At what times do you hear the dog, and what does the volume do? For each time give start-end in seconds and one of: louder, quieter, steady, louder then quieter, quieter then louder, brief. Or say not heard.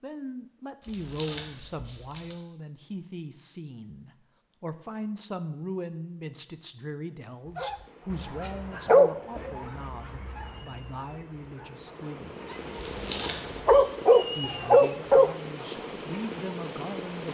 7.5-15.3 quieter then louder.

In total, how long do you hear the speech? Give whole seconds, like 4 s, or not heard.
15 s.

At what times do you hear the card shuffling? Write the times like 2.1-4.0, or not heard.
0.8-2.4, 12.7-13.7.